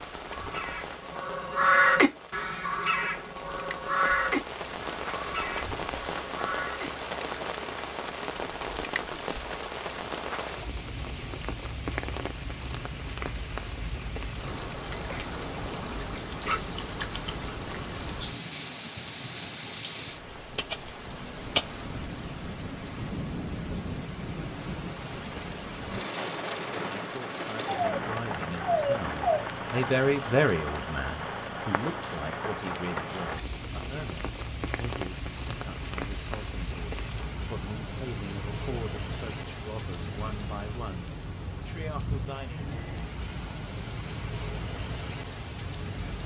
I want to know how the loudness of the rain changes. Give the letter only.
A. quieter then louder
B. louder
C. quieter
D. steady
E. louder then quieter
D.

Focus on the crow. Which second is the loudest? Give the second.
2 s.